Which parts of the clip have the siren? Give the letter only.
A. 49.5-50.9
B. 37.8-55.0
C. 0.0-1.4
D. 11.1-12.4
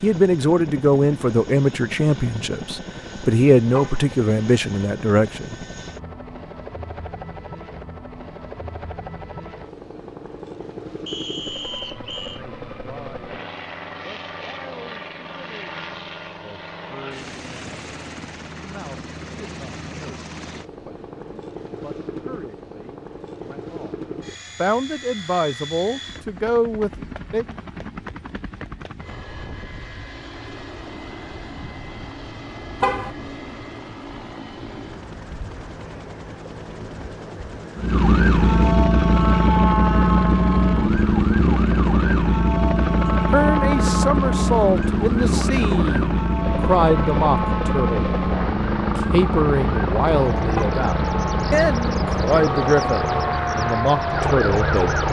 B.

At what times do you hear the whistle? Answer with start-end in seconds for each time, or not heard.
11.1-12.4.